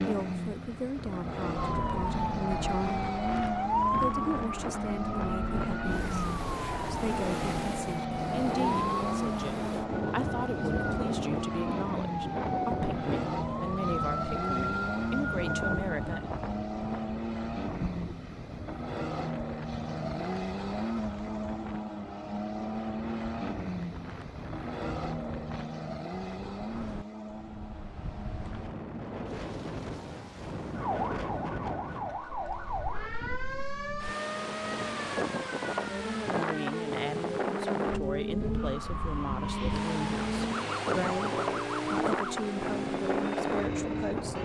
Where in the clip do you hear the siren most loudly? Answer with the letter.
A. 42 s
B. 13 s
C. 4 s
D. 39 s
C.